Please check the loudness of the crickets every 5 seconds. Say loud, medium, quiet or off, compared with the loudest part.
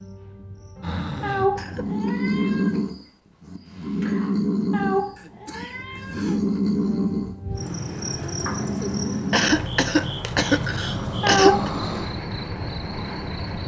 quiet, loud, loud.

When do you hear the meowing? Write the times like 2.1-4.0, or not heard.
1.2-2.7, 4.7-6.4, 11.2-11.7.